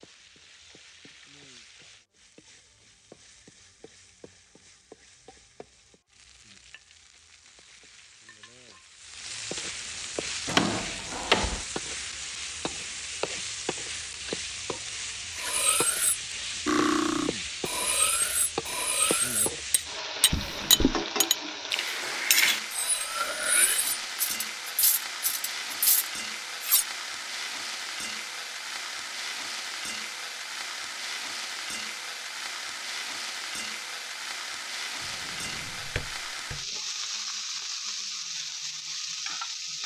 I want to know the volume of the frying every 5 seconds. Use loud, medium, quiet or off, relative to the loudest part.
quiet, medium, loud, loud, loud, loud, loud, loud.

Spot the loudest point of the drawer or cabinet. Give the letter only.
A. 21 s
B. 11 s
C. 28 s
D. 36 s
B.